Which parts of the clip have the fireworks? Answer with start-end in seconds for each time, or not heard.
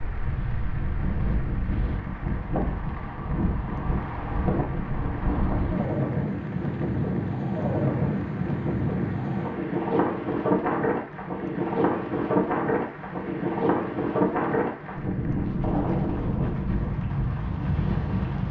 not heard.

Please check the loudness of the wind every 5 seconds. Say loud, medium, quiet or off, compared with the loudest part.
medium, loud, loud, loud.